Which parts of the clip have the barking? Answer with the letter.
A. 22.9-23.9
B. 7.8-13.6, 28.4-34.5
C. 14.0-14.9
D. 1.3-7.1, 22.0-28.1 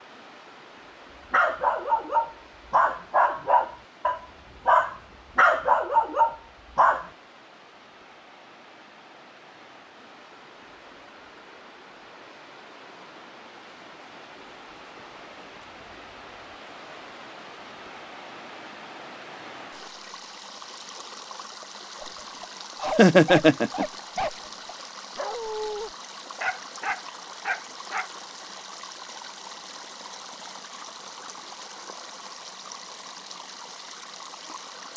D.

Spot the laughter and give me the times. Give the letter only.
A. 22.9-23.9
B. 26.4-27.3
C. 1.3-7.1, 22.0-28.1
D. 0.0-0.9
A.